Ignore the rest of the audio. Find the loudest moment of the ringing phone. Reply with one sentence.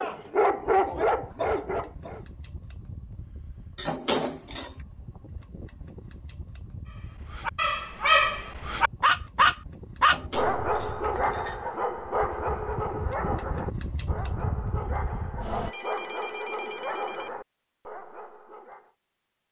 The volume of the ringing phone peaks at 16 seconds.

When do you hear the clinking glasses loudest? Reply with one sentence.
The volume of the clinking glasses peaks at 4 seconds.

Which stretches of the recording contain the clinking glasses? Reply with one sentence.
The clinking glasses can be heard from 3.8 to 4.8 s and from 10.0 to 11.8 s.